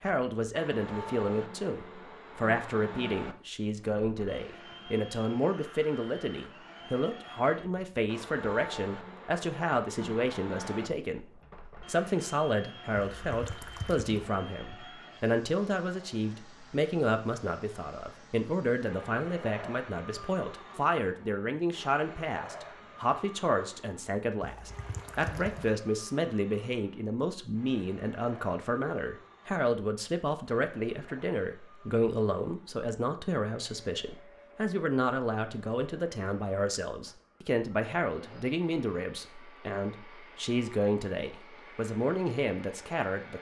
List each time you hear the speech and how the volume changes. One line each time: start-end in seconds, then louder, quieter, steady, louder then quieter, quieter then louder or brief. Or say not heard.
0.0-11.2 steady
11.8-43.3 steady.